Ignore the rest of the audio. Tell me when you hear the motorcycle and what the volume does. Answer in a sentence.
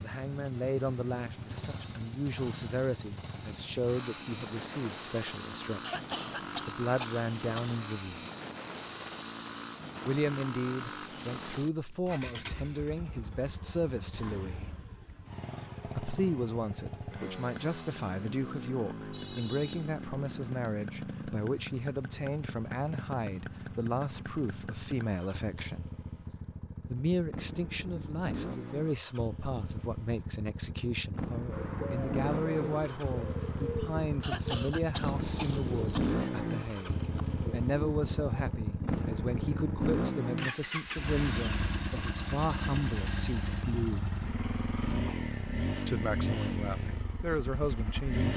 The motorcycle can be heard from 0.0 to 48.3 s, getting louder.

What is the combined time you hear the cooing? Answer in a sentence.
You can hear the cooing for 7 seconds altogether.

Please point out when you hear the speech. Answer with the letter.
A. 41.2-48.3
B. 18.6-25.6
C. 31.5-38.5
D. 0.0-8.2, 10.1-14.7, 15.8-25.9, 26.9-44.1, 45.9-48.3
D.